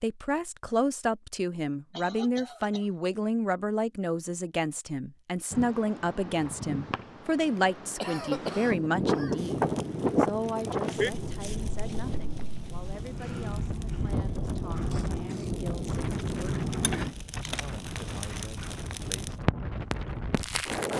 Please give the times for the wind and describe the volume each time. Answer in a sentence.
You can hear the wind from 5.5 to 20.9 s, getting louder then quieter.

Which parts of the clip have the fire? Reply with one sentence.
The fire can be heard from 9.3 to 20.9 s.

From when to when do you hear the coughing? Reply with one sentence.
You can hear the coughing from 1.9 to 2.9 s, from 8.0 to 9.4 s and from 14.9 to 15.6 s.